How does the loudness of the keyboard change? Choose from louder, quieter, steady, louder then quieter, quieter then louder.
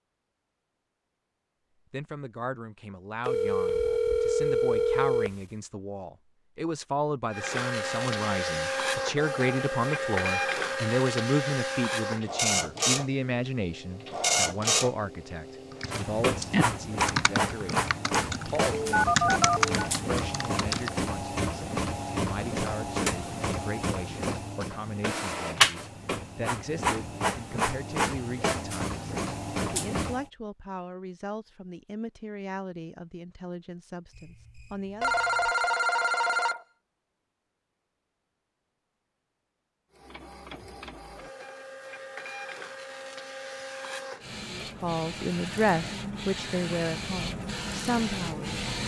quieter then louder.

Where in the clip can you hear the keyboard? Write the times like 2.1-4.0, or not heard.
15.7-20.9.